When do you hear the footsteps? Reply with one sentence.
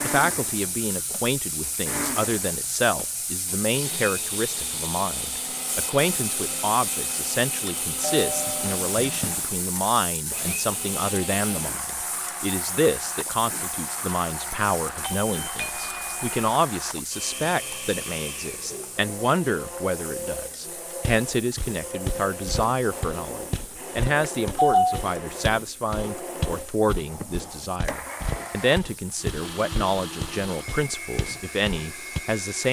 The footsteps can be heard from 21.0 to 32.2 s.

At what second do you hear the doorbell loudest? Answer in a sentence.
The loudest moment of the doorbell is at 25 seconds.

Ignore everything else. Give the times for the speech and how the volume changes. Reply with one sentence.
The speech can be heard from 0.0 to 32.6 s, at a steady volume.